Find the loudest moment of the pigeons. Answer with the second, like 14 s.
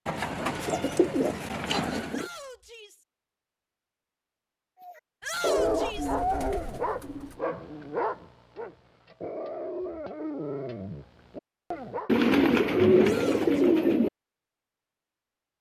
13 s.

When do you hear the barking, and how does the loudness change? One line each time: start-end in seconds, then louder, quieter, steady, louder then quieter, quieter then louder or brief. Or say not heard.
4.8-12.1 quieter.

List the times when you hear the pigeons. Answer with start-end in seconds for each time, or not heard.
0.1-2.3, 5.5-7.4, 12.1-14.1.